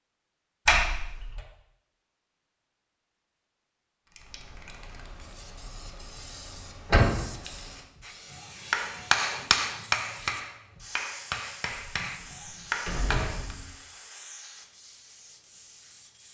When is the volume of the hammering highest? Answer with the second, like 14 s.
9 s.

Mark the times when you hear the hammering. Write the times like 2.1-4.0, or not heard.
8.0-13.6.